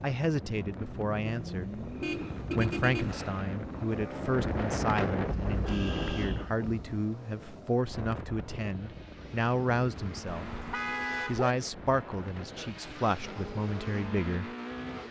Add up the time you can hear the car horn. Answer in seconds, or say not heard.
4 s.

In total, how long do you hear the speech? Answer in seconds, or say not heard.
13 s.